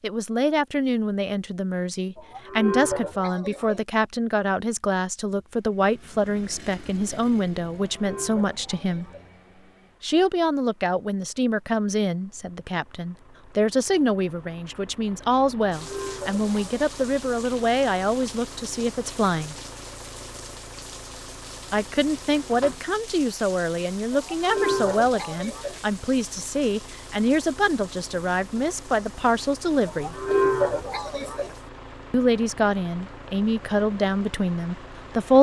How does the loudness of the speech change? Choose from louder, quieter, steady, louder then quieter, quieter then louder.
steady.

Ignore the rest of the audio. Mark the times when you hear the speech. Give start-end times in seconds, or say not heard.
0.0-9.1, 10.0-19.6, 21.7-30.2, 32.1-35.3.